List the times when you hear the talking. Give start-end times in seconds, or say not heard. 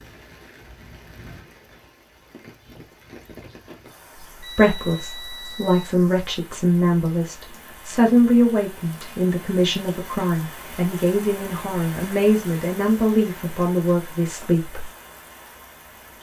4.3-14.8.